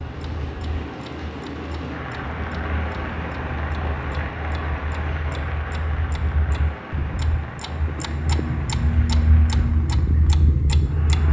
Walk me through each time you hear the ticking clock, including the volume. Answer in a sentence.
The ticking clock can be heard from 0.0 to 11.2 s, getting louder.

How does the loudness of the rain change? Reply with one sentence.
The volume of the rain goes down.